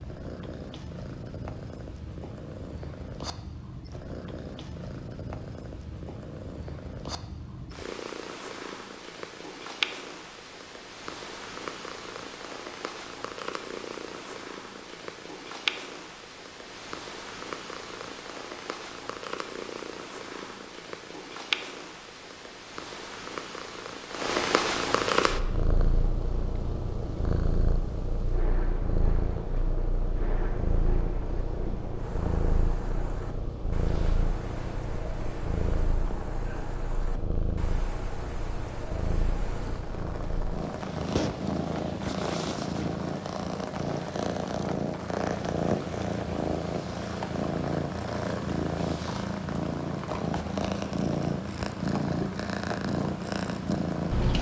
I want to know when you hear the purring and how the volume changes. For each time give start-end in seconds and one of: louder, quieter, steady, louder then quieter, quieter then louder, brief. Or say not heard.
0.0-54.3 louder.